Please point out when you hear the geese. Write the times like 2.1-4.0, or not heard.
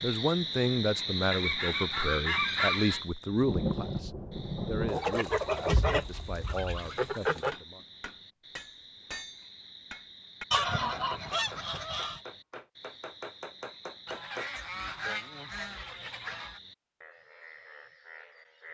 1.3-3.0, 4.8-7.5, 10.5-12.2, 14.1-16.6.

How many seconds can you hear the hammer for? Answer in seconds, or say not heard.
7 s.